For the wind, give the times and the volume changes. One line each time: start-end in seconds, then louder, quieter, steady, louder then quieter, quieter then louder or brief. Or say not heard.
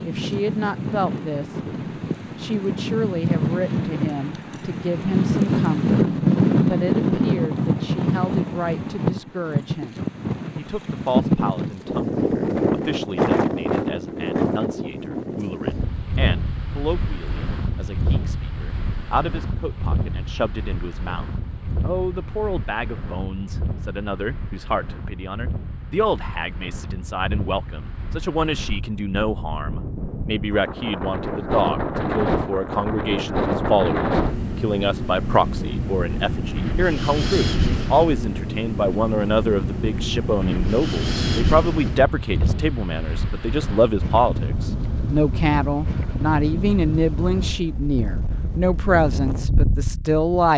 0.0-50.5 quieter then louder.